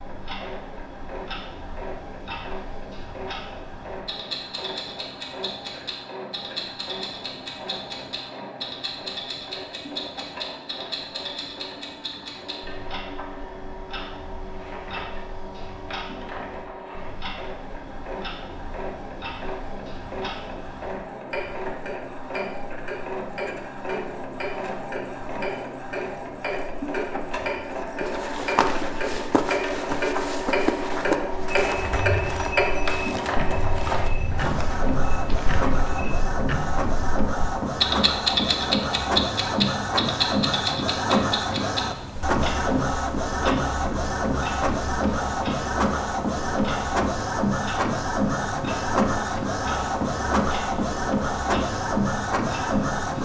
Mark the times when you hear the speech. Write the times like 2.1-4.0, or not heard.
not heard.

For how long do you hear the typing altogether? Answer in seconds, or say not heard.
not heard.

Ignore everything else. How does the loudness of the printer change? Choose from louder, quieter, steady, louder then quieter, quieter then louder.
louder.